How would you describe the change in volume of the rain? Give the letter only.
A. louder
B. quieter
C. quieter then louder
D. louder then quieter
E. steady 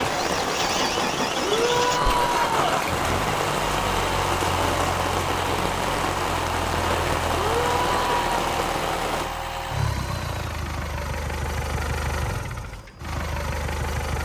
E.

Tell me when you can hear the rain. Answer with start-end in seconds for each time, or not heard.
0.0-9.3.